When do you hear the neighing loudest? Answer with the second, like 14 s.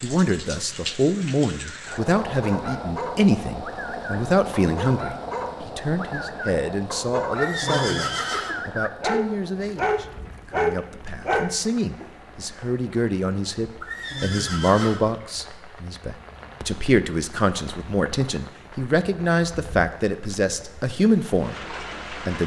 8 s.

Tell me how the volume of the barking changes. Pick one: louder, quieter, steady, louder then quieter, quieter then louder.
louder.